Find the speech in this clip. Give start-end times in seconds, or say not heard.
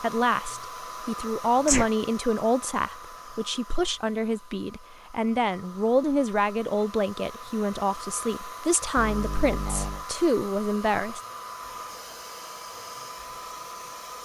0.0-11.2.